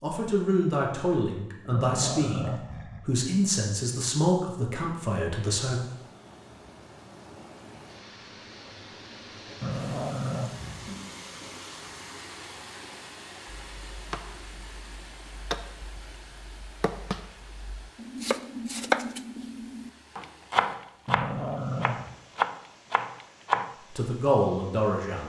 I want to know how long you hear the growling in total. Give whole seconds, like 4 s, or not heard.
4 s.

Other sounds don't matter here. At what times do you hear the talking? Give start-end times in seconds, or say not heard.
0.0-5.8, 23.9-25.2.